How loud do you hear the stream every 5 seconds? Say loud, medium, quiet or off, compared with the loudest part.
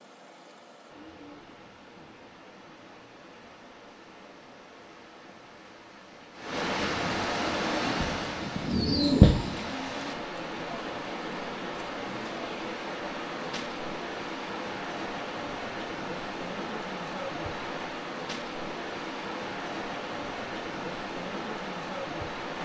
quiet, loud, loud, loud, loud.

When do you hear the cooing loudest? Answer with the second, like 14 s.
9 s.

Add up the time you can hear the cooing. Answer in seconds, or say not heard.
2 s.